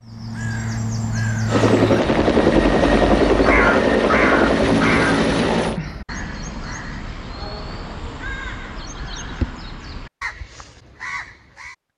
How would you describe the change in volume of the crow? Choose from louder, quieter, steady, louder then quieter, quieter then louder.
quieter.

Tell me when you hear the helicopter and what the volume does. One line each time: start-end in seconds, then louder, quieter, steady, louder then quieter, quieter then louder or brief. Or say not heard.
1.4-5.8 steady.